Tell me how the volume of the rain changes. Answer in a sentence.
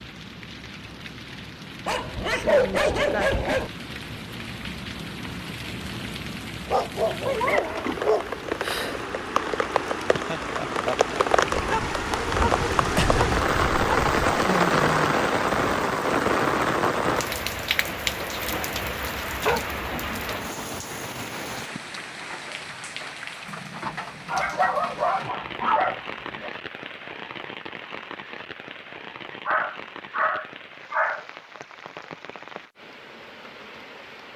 The loudness of the rain goes up, then down.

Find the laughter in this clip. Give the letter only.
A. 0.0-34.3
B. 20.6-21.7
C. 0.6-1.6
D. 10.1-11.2
D.